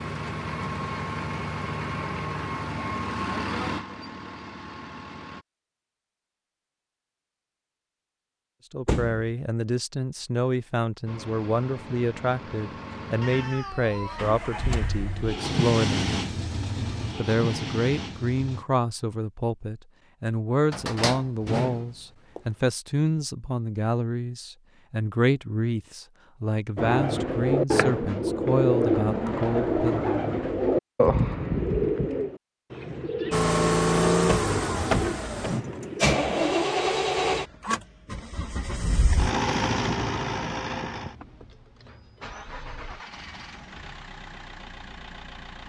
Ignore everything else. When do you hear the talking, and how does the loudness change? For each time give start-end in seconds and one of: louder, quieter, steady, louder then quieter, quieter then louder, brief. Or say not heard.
8.7-16.1 steady
17.1-30.0 steady.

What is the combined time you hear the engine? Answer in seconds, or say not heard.
25 s.